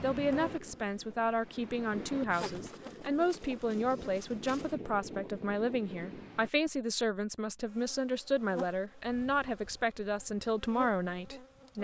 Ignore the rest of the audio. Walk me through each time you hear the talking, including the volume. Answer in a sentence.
The talking can be heard from 0.0 to 11.7 s, at a steady volume.